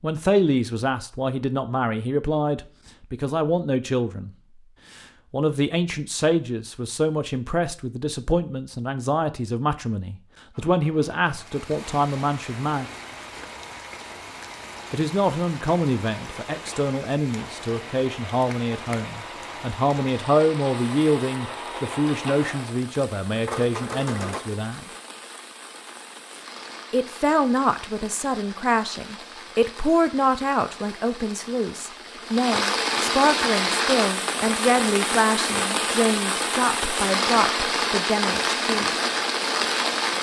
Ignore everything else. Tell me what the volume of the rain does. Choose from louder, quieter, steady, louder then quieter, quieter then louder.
louder.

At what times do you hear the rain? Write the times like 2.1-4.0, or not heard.
11.2-40.1.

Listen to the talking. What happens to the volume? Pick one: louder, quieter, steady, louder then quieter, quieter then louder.
steady.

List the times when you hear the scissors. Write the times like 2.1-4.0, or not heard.
not heard.